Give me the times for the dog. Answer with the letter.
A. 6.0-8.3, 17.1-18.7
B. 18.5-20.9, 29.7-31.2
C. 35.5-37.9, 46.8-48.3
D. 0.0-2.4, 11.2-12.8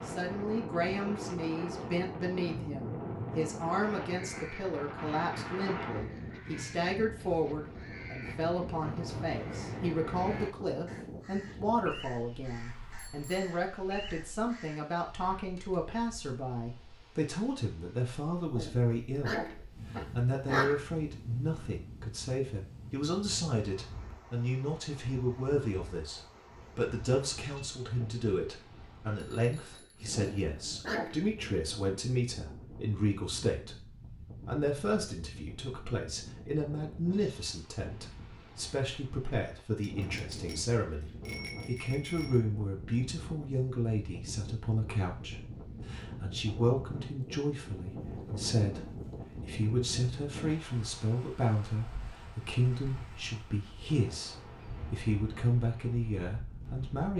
B.